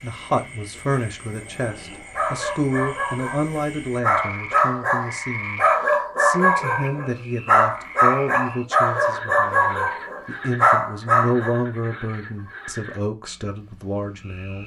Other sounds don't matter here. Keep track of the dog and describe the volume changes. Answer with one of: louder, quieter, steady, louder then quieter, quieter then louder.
louder.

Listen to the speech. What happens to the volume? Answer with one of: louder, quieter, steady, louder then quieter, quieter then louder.
steady.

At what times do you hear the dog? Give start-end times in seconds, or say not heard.
1.6-11.6.